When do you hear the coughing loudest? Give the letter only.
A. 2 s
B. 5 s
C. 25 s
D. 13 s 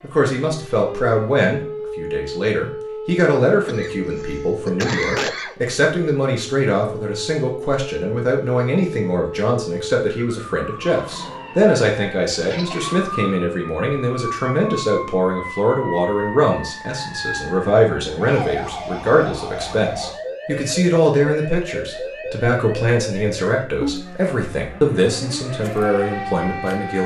B.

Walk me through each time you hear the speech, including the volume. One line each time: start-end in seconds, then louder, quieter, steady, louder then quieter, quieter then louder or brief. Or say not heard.
0.0-27.0 steady.